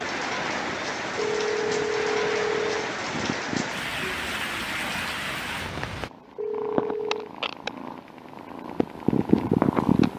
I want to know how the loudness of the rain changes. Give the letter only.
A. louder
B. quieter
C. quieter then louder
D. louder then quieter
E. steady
E.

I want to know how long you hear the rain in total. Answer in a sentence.
You can hear the rain for 6 seconds altogether.